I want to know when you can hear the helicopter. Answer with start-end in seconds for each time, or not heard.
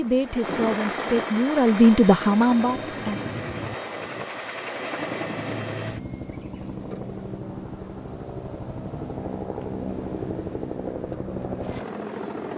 0.0-12.5.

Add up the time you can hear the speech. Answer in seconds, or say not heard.
3 s.